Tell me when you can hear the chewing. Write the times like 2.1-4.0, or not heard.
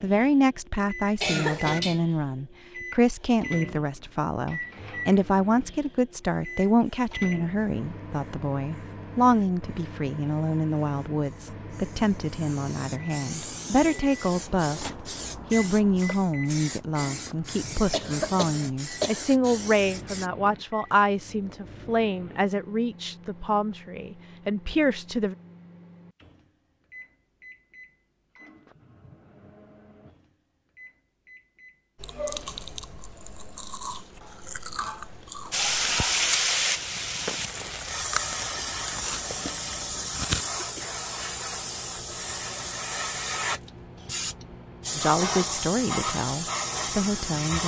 31.9-40.5.